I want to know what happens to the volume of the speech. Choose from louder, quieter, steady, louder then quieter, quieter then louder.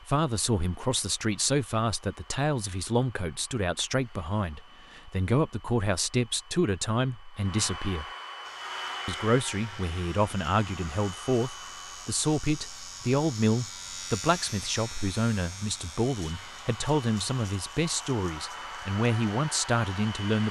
steady.